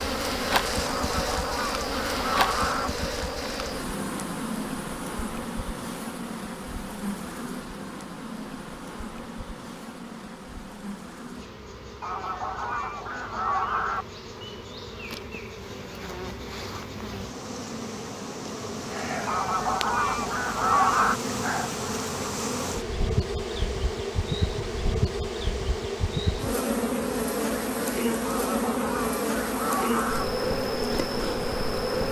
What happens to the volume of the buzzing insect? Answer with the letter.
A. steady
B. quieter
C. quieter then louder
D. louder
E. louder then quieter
C.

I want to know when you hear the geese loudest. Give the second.
21 s.